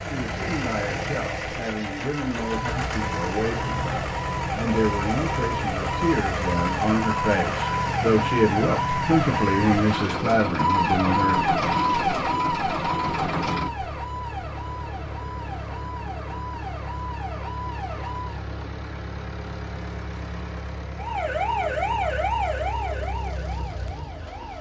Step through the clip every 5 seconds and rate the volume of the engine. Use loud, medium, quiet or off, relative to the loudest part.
loud, loud, loud, medium, medium.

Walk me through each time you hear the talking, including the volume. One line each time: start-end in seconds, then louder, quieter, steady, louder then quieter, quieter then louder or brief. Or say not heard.
0.0-11.4 louder.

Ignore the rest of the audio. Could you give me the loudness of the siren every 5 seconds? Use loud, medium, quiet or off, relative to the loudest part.
medium, loud, loud, medium, loud.